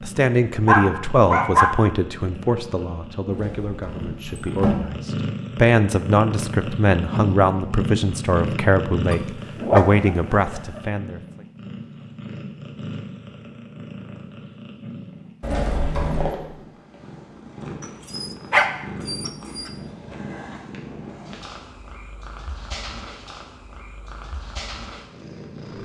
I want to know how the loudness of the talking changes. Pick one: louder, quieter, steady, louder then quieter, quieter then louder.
quieter then louder.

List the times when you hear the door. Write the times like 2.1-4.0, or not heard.
3.3-4.8, 15.4-16.4.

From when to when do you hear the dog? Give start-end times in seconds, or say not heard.
0.7-1.7, 9.1-10.8, 17.8-19.7.